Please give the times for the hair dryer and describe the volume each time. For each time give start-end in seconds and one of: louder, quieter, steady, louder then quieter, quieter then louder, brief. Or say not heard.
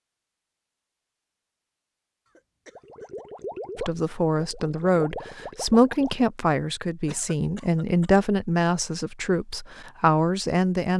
not heard.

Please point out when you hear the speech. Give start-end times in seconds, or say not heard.
3.8-10.9.